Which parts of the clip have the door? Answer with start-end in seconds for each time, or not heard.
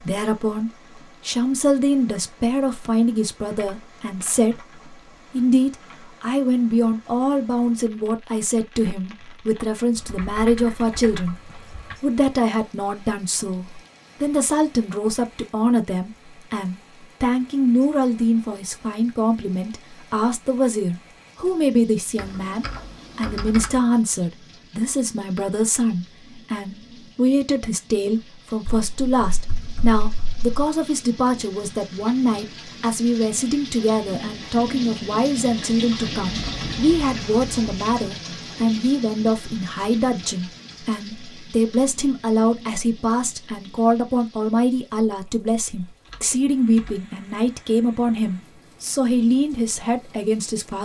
not heard.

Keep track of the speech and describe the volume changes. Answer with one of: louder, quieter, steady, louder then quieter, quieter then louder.
steady.